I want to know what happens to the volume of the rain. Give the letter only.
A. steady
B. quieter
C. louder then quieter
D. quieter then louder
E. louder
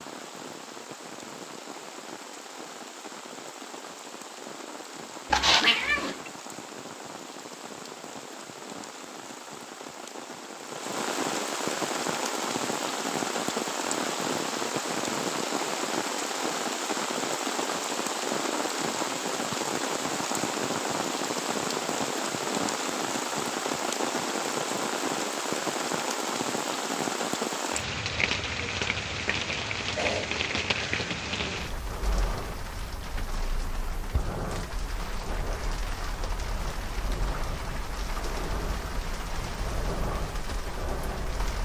C.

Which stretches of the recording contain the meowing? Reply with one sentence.
You can hear the meowing from 5.3 to 6.3 s.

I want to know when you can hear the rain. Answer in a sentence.
You can hear the rain from 0.0 to 41.5 s.